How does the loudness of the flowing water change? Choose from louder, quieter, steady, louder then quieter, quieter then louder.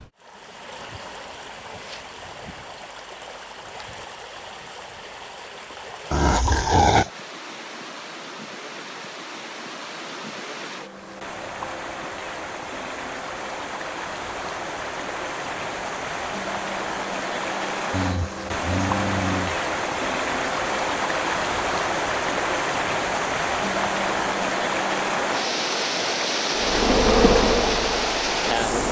louder.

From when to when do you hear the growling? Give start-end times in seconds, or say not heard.
6.1-7.1, 17.9-19.6.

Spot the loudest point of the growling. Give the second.
7 s.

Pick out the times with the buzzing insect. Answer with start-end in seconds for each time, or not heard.
26.6-28.8.